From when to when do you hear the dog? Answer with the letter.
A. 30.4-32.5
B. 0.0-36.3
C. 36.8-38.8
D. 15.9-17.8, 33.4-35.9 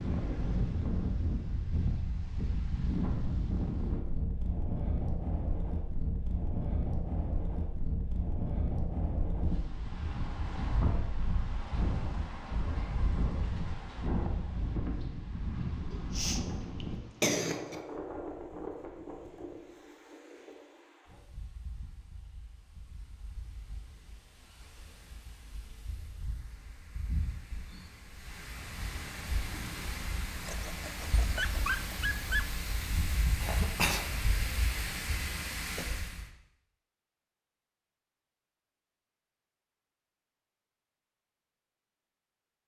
A.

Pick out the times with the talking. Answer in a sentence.
You can't hear the talking here.